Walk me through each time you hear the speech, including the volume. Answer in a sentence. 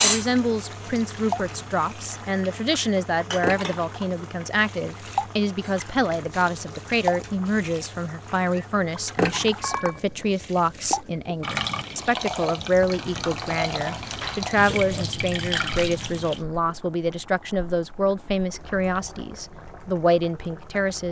The speech can be heard from 0.0 to 21.0 s, at a steady volume.